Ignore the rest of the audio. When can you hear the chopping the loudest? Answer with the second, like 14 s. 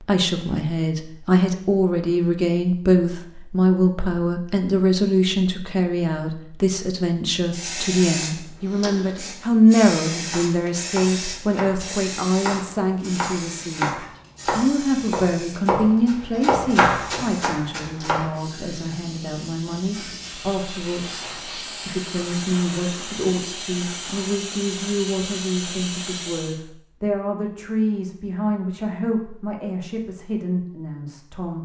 17 s.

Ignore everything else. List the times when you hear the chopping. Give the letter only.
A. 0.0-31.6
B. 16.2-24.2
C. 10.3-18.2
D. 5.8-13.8
C.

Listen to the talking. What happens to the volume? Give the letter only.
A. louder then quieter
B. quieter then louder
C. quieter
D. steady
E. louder
C.